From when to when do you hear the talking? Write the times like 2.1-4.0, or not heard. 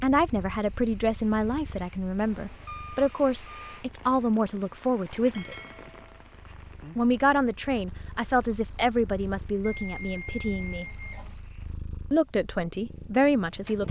0.0-5.5, 7.0-10.8, 12.1-13.8.